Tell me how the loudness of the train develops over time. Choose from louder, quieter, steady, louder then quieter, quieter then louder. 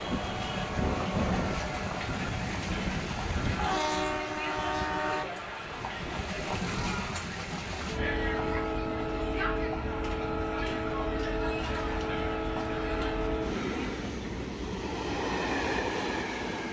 steady.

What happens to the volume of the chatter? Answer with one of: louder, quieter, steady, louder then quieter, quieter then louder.
steady.